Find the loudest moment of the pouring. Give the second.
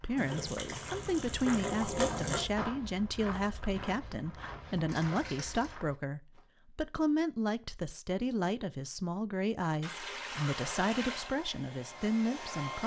2 s.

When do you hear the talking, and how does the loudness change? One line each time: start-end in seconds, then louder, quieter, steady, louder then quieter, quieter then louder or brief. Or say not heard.
0.0-12.8 steady.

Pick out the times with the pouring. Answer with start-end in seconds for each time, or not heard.
0.1-2.5, 4.8-5.8, 9.8-11.3.